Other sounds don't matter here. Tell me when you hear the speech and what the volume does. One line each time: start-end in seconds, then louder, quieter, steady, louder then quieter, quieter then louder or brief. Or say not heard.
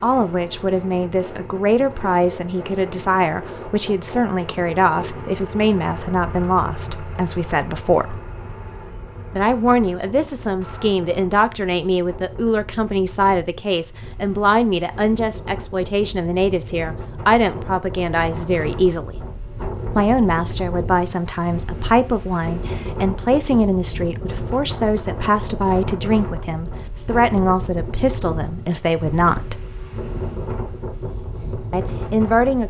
0.0-8.2 steady
9.3-19.1 steady
19.9-29.6 steady
31.7-32.6 brief.